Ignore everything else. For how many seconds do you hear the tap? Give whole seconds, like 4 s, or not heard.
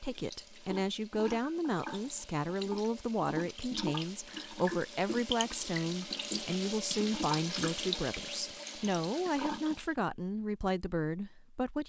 10 s.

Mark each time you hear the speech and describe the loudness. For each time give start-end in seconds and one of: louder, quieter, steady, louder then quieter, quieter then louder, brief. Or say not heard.
0.0-11.8 steady.